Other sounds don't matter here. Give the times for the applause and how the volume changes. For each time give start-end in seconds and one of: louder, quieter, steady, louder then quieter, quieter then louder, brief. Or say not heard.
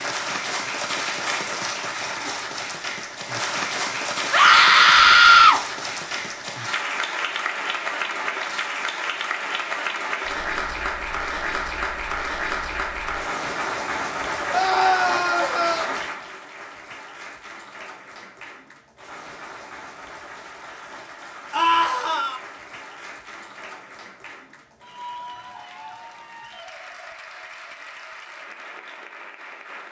0.0-29.8 quieter.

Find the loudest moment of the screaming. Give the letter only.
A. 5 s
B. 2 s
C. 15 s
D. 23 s
A.